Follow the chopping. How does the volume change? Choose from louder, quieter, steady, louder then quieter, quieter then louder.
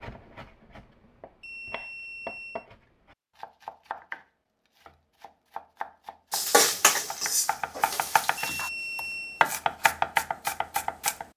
louder.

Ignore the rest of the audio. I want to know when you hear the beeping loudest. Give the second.
9 s.